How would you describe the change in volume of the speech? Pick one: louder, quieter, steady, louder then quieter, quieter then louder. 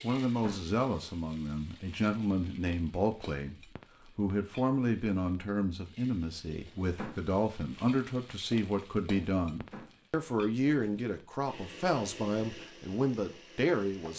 steady.